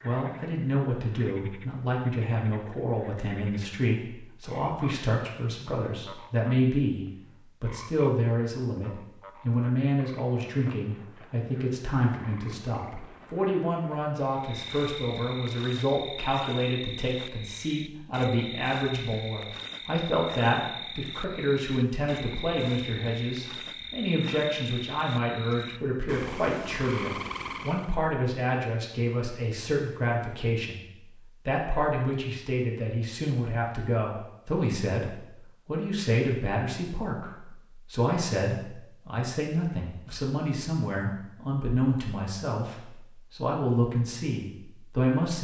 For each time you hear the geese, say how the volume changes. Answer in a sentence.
The geese can't be heard in this clip.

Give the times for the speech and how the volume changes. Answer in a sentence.
The speech can be heard from 0.0 to 45.3 s, at a steady volume.